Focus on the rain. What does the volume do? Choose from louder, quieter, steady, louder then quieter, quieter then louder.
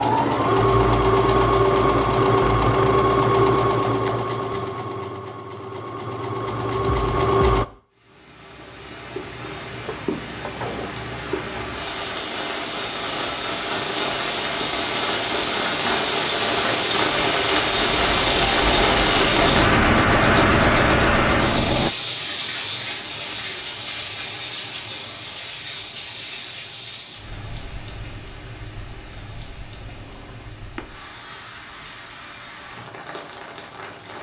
louder then quieter.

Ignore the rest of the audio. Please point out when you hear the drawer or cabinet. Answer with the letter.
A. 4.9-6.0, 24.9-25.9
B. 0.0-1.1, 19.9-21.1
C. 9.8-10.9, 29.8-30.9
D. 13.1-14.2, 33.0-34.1
C.